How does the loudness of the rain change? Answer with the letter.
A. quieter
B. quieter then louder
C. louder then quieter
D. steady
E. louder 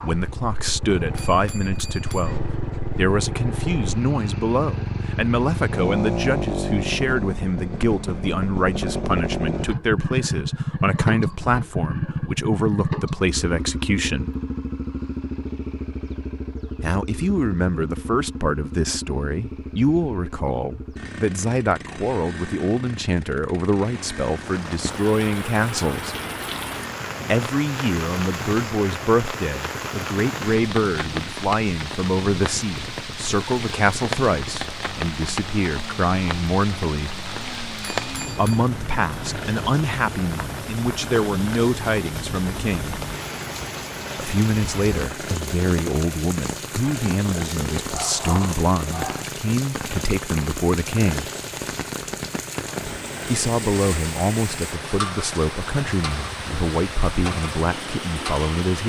D.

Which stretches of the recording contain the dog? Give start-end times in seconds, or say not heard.
47.9-49.3.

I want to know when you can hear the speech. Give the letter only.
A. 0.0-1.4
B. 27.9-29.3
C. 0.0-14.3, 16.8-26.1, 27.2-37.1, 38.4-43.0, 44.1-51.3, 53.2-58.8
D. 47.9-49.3
C.